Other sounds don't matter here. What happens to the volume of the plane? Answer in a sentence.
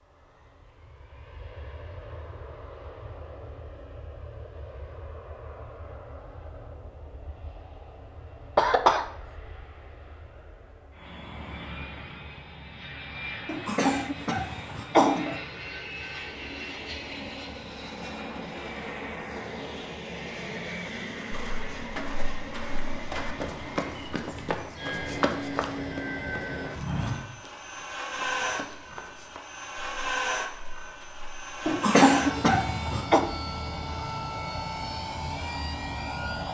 The volume of the plane goes up.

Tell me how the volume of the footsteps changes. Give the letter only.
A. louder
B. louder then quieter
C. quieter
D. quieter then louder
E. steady
B.